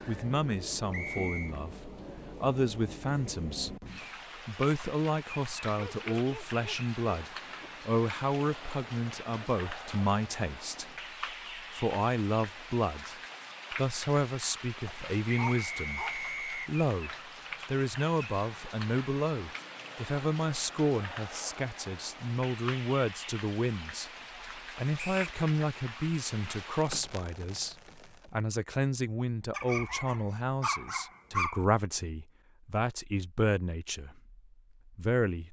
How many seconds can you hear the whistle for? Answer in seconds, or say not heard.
2 s.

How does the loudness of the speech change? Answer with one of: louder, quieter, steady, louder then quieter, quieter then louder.
steady.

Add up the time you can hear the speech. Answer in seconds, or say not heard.
35 s.